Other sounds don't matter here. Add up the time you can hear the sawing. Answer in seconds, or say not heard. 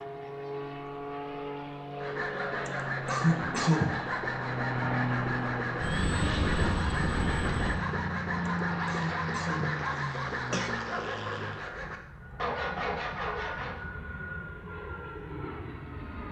12 s.